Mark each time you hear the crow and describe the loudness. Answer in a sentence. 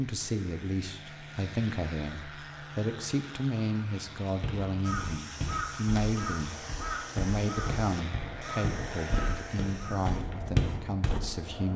The crow can be heard from 4.8 to 10.2 s, getting quieter.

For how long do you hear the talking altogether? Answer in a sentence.
You can hear the talking for 12 seconds altogether.